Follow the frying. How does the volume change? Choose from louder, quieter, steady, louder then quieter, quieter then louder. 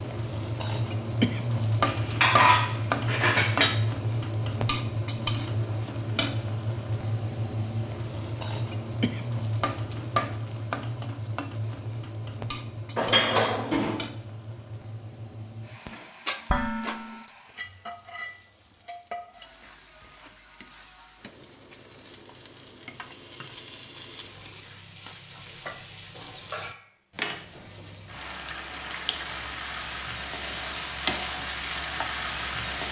quieter then louder.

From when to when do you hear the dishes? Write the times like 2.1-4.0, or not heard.
1.9-3.7, 12.9-14.1, 16.5-17.1, 26.5-27.4.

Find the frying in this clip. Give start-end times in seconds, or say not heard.
0.0-32.8.